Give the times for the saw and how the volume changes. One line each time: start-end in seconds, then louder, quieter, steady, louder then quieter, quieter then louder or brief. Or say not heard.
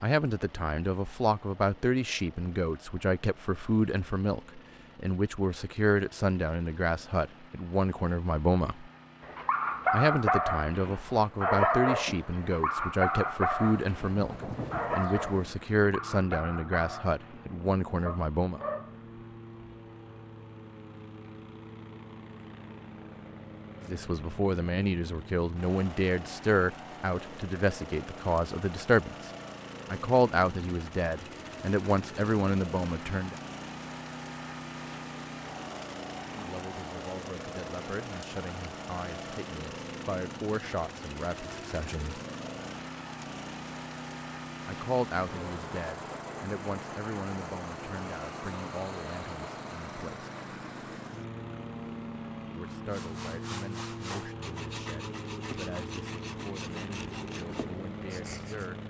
52.9-58.7 steady.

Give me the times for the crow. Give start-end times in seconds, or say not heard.
not heard.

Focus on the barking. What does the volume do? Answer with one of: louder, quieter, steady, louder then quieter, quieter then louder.
quieter.